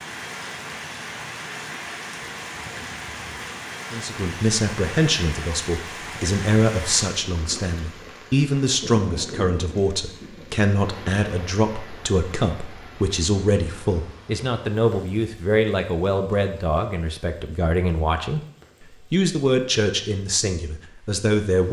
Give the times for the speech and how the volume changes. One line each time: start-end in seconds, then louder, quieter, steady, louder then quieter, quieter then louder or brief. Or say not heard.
3.9-21.6 steady.